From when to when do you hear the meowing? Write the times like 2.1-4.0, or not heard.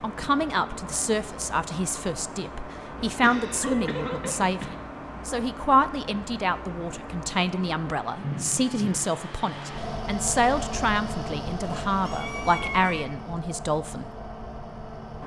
3.6-4.4, 11.6-13.1.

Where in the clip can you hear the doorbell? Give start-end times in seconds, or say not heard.
not heard.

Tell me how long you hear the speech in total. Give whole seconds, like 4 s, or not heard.
14 s.